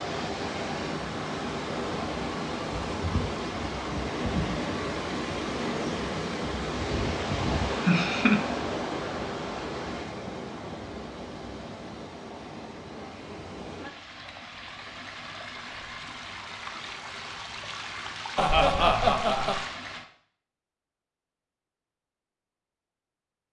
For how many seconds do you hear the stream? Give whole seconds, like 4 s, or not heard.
20 s.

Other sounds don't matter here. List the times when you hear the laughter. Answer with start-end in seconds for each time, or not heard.
7.8-8.4, 18.4-19.6.